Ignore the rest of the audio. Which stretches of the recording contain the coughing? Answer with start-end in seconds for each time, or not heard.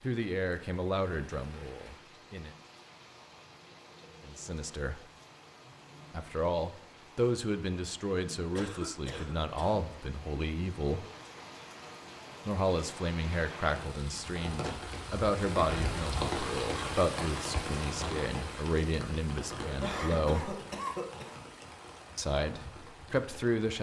8.6-9.8, 19.6-21.5.